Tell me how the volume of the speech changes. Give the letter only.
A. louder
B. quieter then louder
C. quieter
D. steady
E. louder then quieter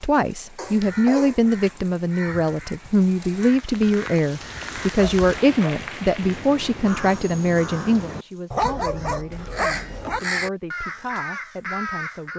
C.